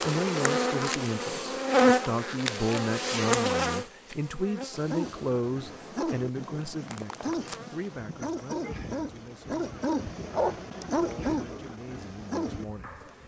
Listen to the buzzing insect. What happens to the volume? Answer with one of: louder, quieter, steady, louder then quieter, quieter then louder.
quieter.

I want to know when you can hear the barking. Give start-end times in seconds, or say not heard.
4.7-13.2.